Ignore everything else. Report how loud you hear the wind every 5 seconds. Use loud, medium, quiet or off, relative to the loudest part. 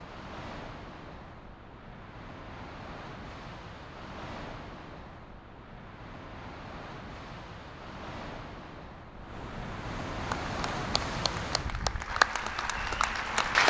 medium, medium, loud.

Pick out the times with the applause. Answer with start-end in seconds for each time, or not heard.
10.1-13.6.